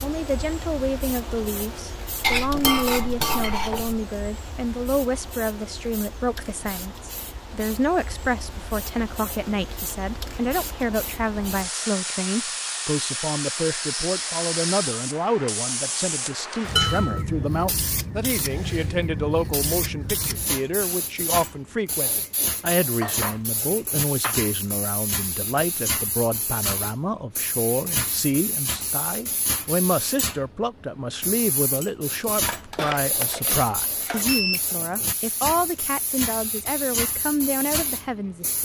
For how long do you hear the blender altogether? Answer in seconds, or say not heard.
not heard.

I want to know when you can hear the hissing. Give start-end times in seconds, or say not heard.
0.0-38.5.